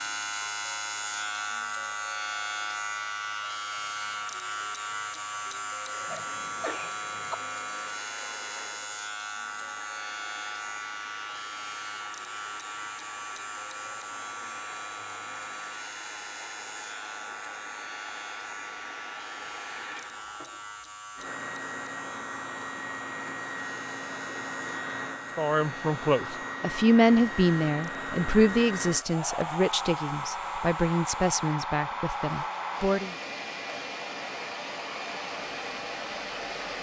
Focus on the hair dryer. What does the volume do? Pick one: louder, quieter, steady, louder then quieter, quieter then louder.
louder.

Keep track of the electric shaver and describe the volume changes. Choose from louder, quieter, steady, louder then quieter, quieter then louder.
quieter.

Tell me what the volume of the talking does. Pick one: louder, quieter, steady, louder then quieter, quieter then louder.
quieter.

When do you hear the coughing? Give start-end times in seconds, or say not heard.
6.0-7.3.